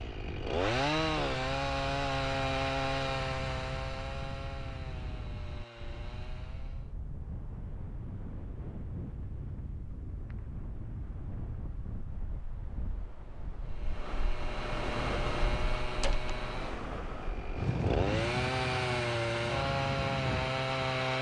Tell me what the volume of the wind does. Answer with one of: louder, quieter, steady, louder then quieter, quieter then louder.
louder.